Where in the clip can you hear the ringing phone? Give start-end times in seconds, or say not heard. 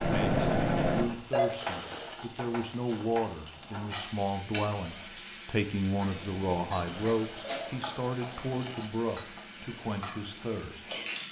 0.0-1.5, 6.1-7.8.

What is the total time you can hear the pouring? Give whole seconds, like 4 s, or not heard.
3 s.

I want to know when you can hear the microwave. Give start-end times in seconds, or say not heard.
not heard.